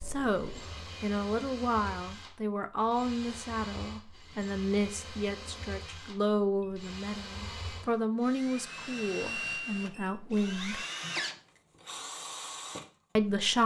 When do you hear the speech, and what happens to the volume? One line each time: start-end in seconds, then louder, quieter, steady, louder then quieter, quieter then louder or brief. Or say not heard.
0.0-10.8 steady
13.2-13.6 brief.